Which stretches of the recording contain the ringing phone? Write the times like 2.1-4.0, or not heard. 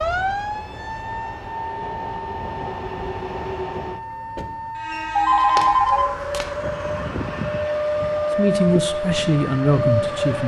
4.9-6.5.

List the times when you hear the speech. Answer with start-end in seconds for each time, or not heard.
8.3-10.4.